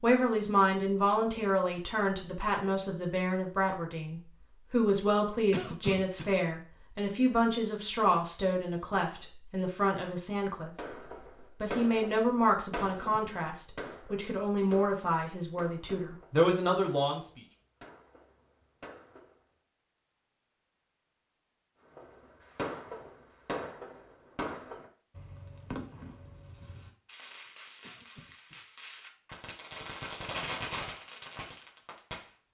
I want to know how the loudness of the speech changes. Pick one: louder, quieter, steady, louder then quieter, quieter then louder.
steady.